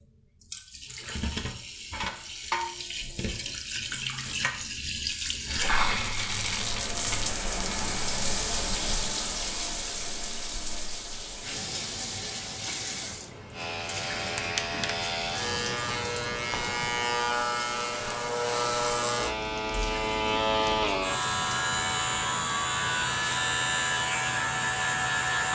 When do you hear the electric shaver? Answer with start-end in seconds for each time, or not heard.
13.5-25.4.